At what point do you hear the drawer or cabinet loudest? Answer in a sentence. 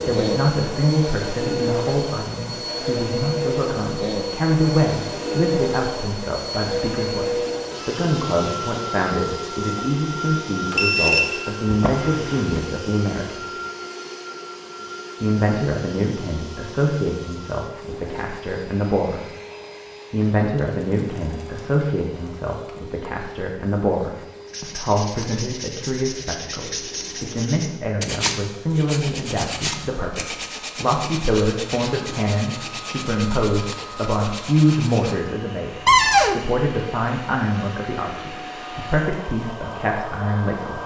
The loudest moment of the drawer or cabinet is at 36 seconds.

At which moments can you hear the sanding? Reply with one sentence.
The sanding can be heard from 24.4 to 35.2 s.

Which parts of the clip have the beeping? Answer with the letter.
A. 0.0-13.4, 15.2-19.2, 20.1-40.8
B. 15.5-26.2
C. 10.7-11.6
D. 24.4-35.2
C.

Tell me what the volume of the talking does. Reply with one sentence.
The loudness of the talking stays about the same.